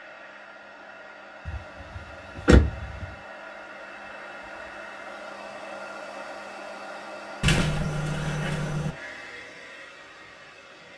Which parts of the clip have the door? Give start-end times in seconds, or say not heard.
1.4-3.0, 7.4-8.9.